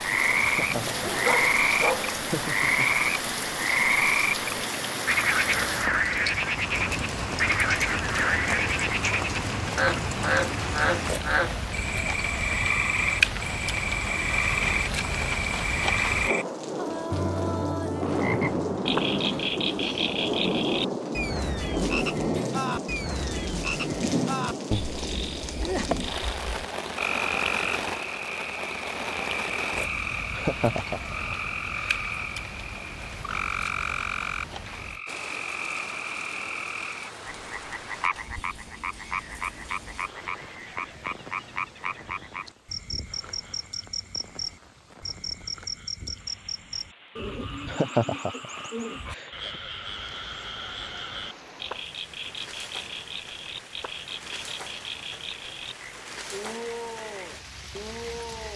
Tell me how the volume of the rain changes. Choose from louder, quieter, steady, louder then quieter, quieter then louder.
quieter.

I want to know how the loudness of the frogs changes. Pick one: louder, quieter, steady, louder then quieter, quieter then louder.
quieter.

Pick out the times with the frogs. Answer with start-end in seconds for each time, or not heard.
0.0-58.5.